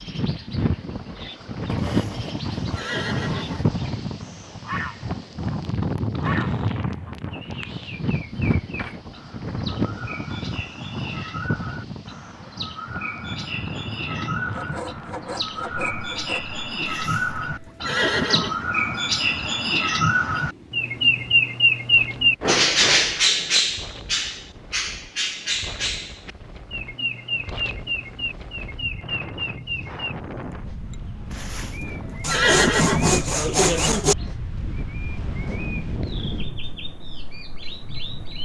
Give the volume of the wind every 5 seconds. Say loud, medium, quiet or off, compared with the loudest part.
loud, loud, medium, quiet, quiet, quiet, medium, medium.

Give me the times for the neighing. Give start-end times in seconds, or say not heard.
1.9-3.7, 16.9-18.6, 31.3-33.2.